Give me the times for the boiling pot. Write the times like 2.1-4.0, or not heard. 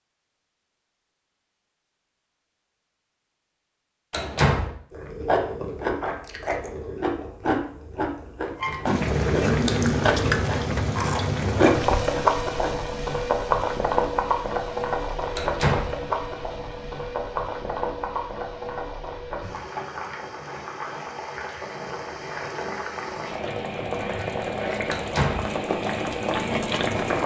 8.8-27.2.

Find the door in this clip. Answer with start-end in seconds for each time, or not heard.
4.1-4.7, 15.3-15.9, 24.9-25.4.